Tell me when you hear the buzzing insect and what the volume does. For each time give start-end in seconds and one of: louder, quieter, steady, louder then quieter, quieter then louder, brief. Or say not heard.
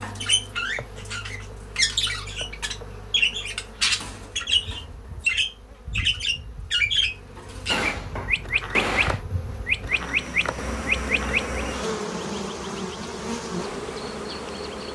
0.0-14.8 louder.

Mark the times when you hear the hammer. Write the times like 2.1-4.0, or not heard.
7.7-9.2.